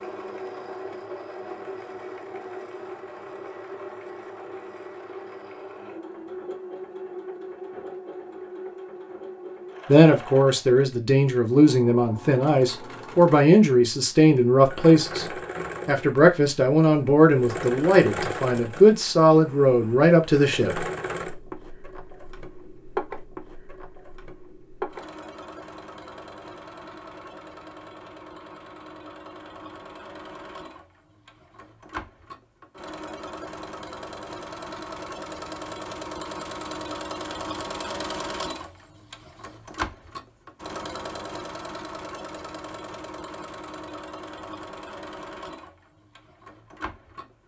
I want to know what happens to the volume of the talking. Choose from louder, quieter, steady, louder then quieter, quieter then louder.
steady.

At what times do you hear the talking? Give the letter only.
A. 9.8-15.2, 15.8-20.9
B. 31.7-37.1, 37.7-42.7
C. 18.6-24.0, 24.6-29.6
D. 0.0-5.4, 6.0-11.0
A.